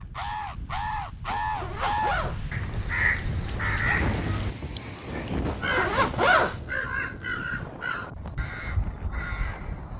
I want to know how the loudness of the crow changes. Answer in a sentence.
The volume of the crow goes down.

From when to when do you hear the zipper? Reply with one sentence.
The zipper can be heard from 1.2 to 3.1 s and from 5.5 to 6.6 s.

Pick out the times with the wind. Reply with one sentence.
The wind can be heard from 0.0 to 9.9 s.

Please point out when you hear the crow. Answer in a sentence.
The crow can be heard from 0.0 to 9.9 s.